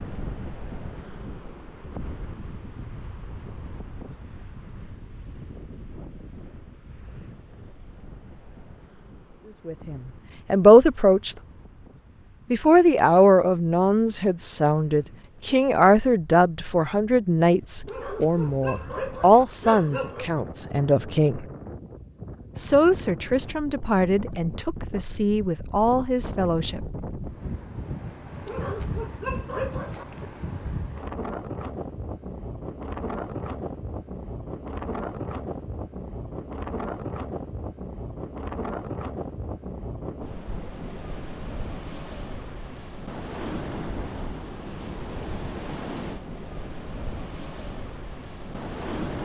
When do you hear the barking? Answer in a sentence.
You can hear the barking from 17.9 to 20.3 s and from 28.4 to 30.2 s.